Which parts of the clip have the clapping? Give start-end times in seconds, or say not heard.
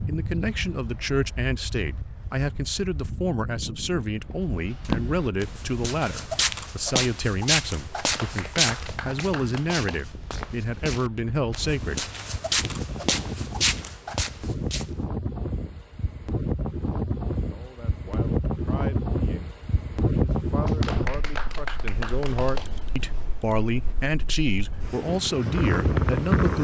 8.0-10.0, 20.6-22.6.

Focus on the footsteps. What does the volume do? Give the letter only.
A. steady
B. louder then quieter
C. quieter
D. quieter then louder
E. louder
D.